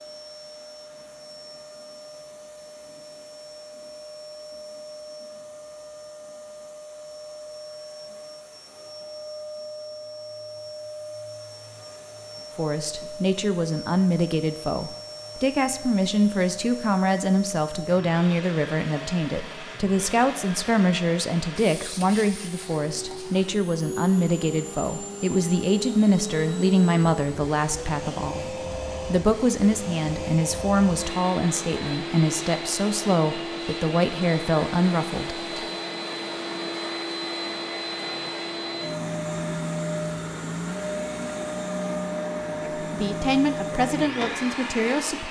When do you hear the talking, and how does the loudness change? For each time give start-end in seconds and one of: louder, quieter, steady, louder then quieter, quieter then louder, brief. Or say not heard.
12.6-35.4 steady
42.8-45.2 brief.